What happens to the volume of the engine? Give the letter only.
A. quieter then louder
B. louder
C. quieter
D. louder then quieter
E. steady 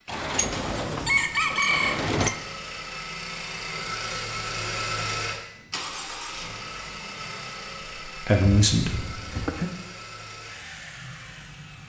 D.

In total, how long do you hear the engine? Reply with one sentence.
You can hear the engine for 12 seconds altogether.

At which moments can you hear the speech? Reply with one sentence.
You can hear the speech from 8.1 to 9.7 s.